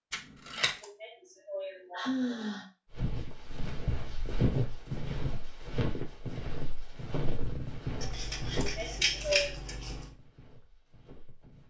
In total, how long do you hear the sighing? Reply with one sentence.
The sighing can be heard for 3 seconds in total.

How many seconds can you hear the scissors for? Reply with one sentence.
You can hear the scissors for 3 seconds altogether.